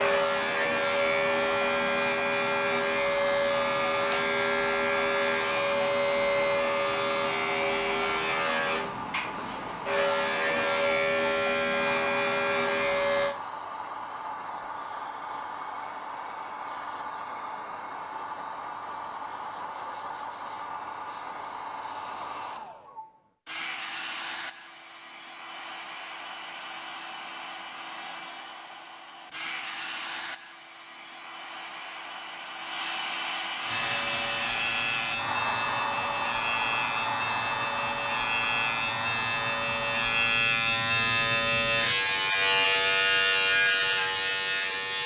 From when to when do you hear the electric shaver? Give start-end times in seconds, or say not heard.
0.0-13.3, 33.6-45.0.